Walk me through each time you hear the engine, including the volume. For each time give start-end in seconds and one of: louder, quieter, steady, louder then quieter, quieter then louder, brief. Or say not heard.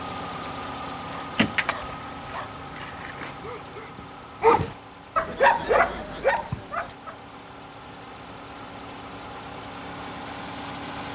0.0-11.1 quieter then louder.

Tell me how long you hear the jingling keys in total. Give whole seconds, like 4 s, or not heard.
2 s.